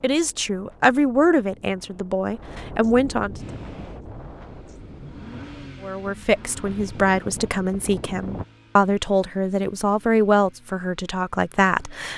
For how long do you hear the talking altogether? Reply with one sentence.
You can hear the talking for 10 seconds altogether.